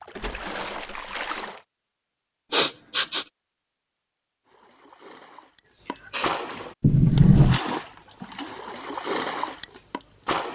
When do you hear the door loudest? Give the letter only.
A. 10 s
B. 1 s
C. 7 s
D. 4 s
C.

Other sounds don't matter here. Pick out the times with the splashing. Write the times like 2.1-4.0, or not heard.
0.0-1.6, 4.5-10.5.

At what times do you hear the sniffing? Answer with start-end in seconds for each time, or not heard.
2.5-3.2, 5.8-6.5.